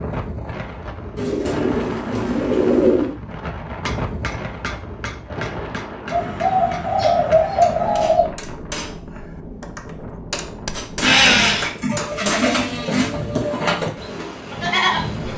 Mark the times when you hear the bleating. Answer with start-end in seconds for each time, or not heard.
11.0-15.3.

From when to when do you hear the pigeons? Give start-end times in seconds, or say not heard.
1.1-3.1, 6.1-8.3, 11.0-13.1.